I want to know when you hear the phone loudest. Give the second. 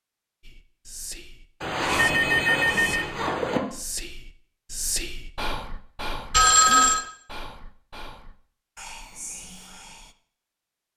7 s.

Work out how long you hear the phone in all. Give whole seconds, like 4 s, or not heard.
3 s.